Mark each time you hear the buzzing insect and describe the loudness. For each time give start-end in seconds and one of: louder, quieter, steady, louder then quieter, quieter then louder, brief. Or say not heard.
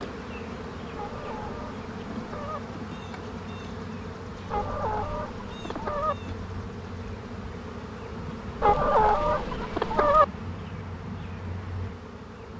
0.0-12.5 steady.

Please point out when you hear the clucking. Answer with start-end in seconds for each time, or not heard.
0.9-2.6, 4.5-6.2, 8.6-10.2.